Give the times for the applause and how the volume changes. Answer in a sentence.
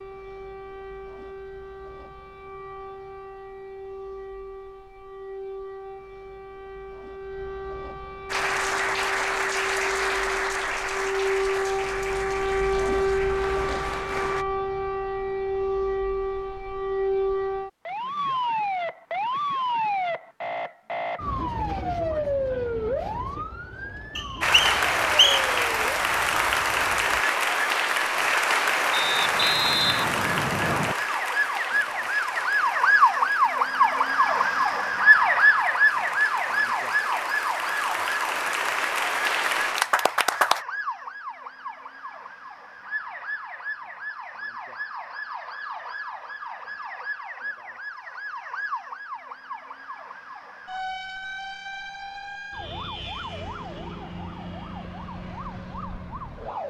The applause can be heard from 8.2 to 14.4 s, getting quieter; and from 24.4 to 40.6 s, getting quieter then louder.